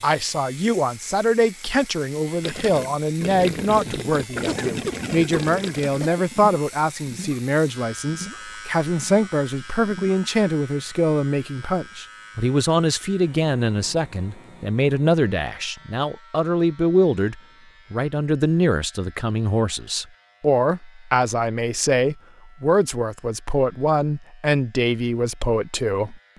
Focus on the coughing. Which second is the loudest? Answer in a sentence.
The loudest moment of the coughing is at 5 seconds.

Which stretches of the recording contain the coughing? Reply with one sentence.
You can hear the coughing from 4.5 to 6.2 s.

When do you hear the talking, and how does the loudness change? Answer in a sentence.
The talking can be heard from 0.0 to 26.2 s, at a steady volume.